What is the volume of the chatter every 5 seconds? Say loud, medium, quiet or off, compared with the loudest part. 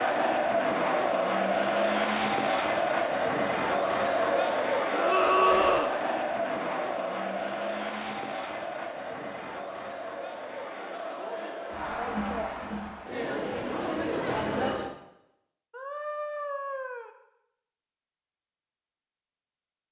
loud, medium, medium, off.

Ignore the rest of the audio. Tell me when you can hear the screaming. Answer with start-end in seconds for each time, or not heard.
4.9-6.0, 15.7-17.1.